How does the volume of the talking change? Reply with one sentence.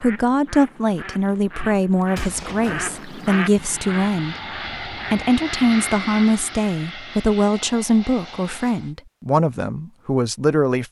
The volume of the talking stays about the same.